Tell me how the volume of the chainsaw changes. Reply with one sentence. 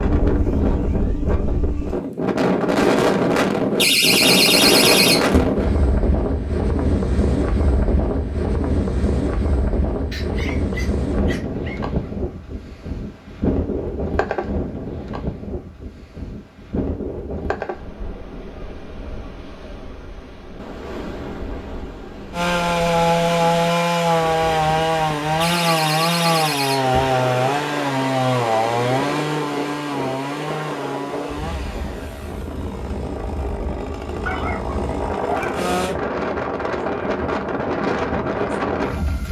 The volume of the chainsaw goes down.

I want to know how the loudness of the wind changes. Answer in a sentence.
The loudness of the wind goes down, then up.